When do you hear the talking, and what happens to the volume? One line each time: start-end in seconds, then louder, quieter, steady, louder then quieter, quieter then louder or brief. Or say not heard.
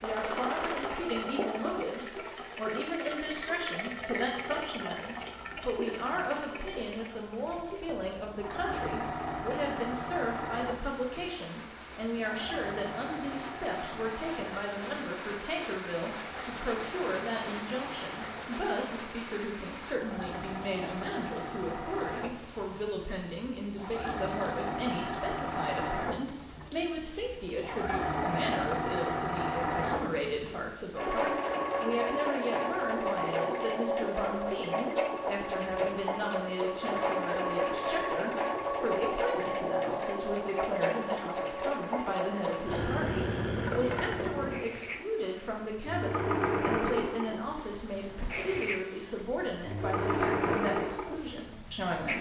0.0-52.1 steady.